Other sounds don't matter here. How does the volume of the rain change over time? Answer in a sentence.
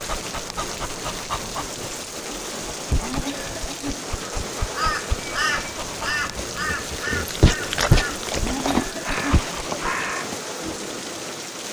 The volume of the rain stays about the same.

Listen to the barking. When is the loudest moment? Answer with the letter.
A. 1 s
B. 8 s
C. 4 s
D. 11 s
B.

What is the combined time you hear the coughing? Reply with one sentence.
The coughing can be heard for 2 seconds in total.